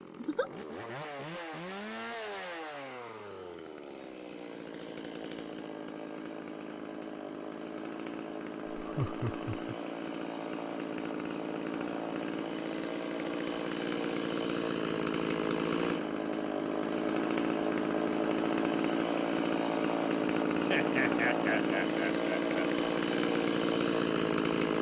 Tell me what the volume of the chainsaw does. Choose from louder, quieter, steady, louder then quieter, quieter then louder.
louder.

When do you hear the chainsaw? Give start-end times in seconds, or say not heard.
0.0-24.7.